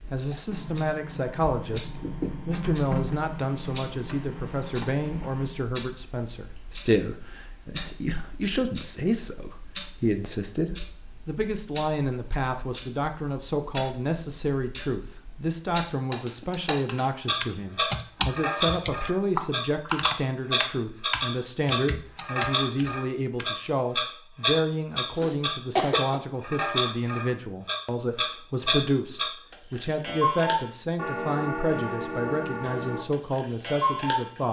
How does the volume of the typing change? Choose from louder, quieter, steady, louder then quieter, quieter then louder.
quieter.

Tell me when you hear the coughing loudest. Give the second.
26 s.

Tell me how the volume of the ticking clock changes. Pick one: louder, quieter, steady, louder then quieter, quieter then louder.
louder.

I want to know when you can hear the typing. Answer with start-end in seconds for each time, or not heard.
17.4-23.4.